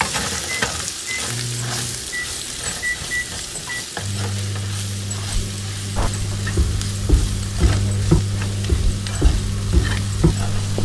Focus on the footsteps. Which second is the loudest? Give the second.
8 s.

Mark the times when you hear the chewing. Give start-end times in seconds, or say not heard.
not heard.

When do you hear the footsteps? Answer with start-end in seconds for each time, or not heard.
6.0-10.7.